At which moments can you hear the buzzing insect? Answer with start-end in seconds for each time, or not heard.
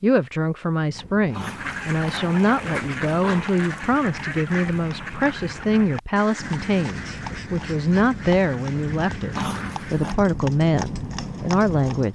not heard.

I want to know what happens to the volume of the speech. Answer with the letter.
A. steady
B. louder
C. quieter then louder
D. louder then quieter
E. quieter
A.